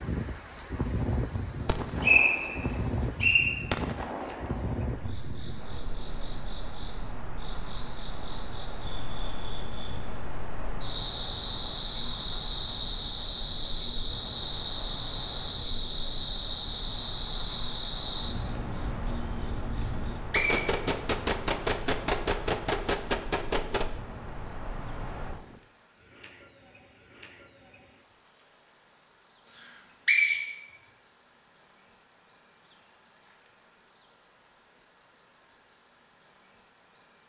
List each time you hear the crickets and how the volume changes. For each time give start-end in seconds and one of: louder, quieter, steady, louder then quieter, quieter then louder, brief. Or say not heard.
0.0-37.2 louder.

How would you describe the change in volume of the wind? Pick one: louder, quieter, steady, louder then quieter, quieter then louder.
quieter.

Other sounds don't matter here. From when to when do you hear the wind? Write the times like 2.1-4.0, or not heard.
0.0-25.6.